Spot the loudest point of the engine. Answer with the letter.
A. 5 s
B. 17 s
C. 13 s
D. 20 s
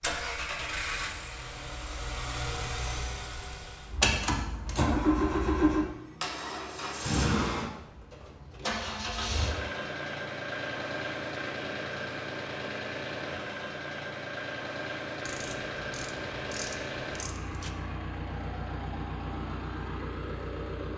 A.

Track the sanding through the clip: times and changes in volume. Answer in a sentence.
The sanding can't be heard in this clip.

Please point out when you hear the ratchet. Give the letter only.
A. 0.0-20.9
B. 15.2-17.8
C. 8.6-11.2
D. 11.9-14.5
B.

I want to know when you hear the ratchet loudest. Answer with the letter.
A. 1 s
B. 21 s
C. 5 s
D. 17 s
D.